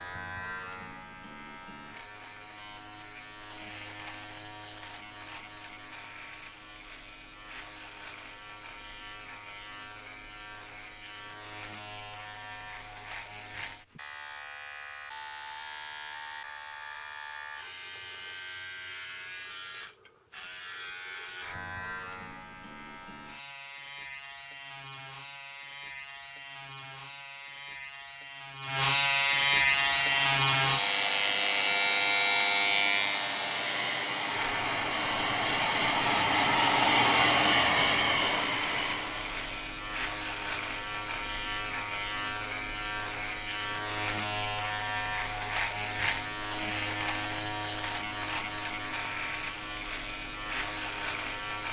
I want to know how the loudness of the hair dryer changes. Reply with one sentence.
The volume of the hair dryer goes up.